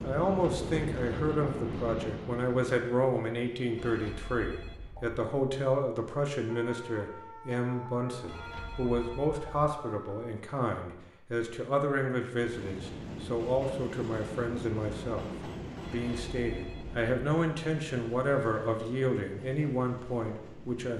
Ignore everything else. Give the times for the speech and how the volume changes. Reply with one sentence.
You can hear the speech from 0.0 to 15.3 s, at a steady volume; and from 15.9 to 20.9 s, at a steady volume.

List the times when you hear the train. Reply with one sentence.
The train can be heard from 0.0 to 4.0 s and from 12.4 to 20.9 s.